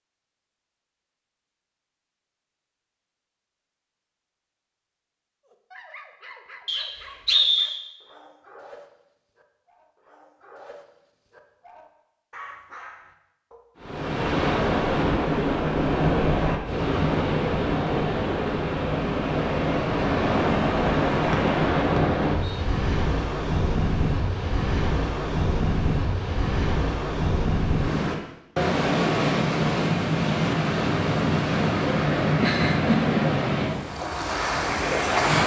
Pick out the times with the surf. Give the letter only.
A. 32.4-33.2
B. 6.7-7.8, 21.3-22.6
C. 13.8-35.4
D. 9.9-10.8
C.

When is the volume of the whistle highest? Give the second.
7 s.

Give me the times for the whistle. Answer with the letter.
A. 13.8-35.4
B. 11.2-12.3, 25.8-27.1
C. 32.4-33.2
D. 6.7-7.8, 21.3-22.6
D.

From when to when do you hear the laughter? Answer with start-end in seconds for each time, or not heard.
32.4-33.2.